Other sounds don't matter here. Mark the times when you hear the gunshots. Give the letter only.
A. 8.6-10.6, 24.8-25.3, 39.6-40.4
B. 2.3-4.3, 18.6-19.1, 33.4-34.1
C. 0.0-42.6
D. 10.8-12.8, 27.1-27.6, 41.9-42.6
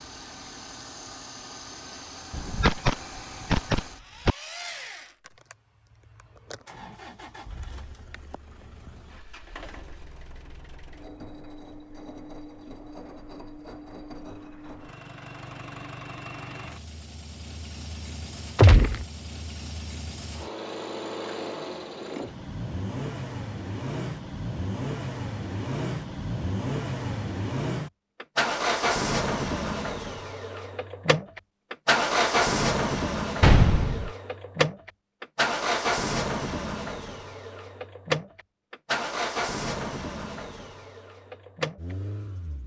B.